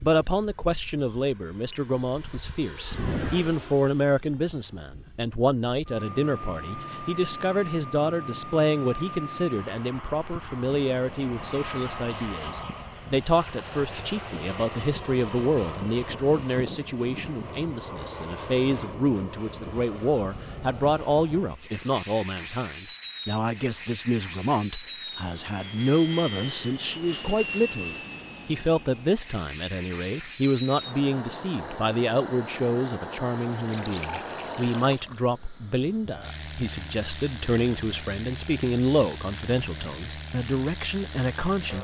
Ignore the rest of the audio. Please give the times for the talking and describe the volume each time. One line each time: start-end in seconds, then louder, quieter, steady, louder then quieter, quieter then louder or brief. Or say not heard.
0.0-41.7 steady.